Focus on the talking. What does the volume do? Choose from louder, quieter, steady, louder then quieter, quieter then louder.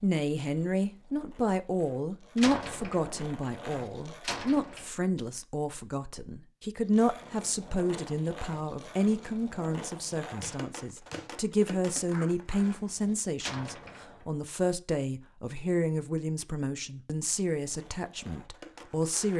steady.